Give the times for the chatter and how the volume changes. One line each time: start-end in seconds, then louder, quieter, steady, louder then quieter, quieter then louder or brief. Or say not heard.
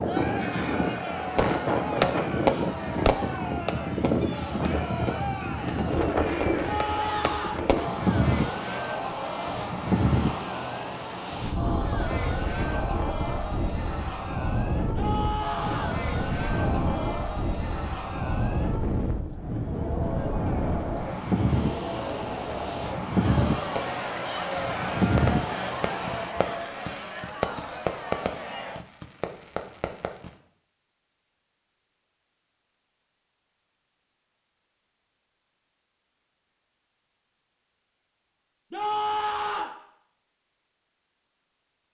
0.0-28.8 steady.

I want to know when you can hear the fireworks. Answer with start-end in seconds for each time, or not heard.
1.4-7.9, 23.8-30.4.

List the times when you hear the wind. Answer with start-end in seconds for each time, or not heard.
0.0-26.3.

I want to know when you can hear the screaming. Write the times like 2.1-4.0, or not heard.
6.6-7.7, 14.9-16.0, 38.7-39.8.